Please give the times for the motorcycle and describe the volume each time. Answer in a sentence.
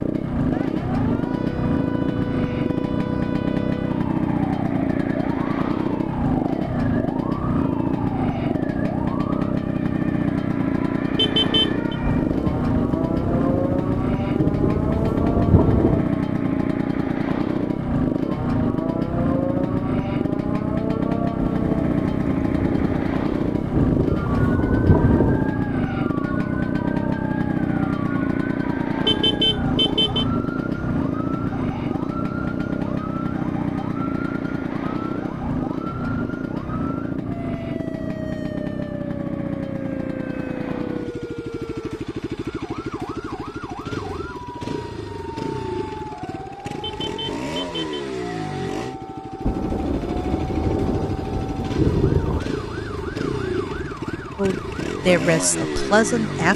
The motorcycle can be heard from 0.0 to 56.5 s, getting quieter.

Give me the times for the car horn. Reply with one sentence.
You can hear the car horn from 11.2 to 11.9 s, from 29.1 to 30.2 s and from 46.8 to 48.0 s.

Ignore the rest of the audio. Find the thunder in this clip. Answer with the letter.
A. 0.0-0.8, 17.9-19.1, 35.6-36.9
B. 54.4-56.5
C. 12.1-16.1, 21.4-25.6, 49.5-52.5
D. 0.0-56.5
C.